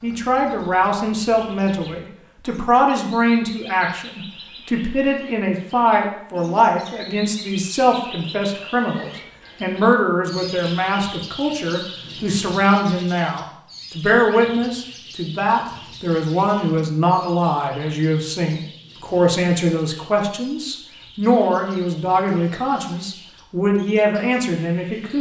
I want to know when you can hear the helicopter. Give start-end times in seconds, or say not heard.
not heard.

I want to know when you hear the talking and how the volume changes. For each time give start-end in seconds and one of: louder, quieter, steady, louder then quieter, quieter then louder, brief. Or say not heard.
0.0-25.1 steady.